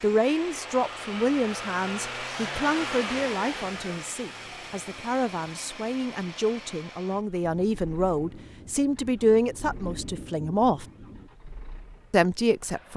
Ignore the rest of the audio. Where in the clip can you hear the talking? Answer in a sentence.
You can hear the talking from 0.0 to 10.8 s and from 12.1 to 12.9 s.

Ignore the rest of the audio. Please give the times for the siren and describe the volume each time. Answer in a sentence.
You can't hear the siren here.